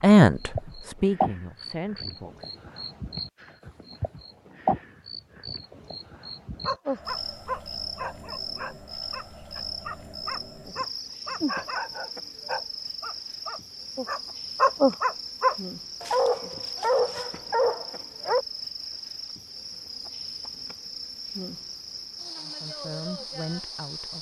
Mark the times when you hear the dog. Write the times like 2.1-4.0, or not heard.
6.7-18.4.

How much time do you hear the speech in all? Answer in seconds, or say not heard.
4 s.